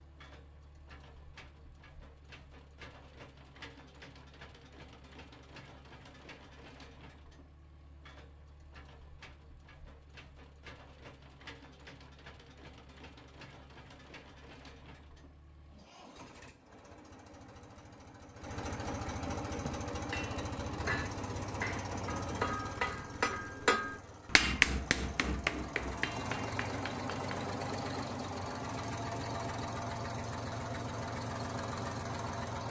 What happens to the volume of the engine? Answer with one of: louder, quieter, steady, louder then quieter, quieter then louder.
louder.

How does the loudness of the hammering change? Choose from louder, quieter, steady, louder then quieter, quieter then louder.
louder then quieter.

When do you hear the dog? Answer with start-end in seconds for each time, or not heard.
not heard.